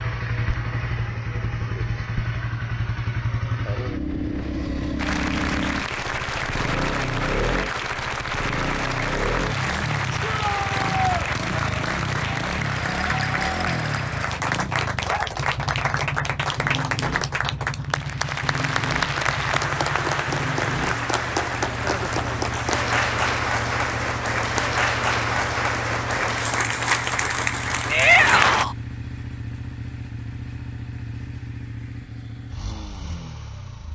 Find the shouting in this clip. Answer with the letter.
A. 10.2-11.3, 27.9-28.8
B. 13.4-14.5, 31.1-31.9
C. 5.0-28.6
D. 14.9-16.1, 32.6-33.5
A.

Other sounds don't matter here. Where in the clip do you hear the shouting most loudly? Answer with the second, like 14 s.
28 s.